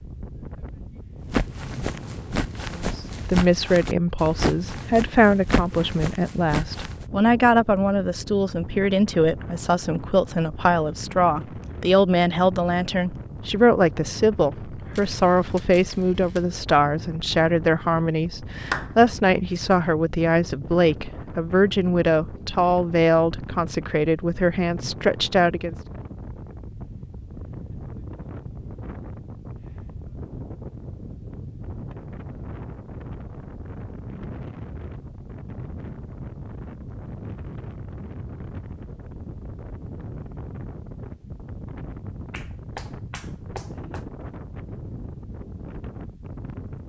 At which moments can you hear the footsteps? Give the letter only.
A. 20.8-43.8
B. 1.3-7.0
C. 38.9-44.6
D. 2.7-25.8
B.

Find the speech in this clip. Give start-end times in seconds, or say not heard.
2.7-25.8.